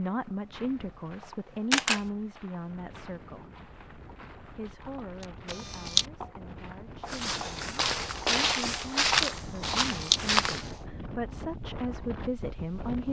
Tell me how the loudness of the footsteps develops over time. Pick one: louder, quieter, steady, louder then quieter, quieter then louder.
louder.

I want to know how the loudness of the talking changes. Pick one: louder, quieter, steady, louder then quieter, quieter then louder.
quieter then louder.